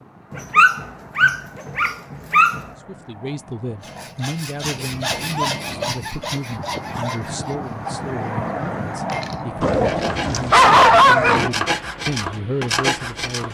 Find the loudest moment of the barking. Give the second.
11 s.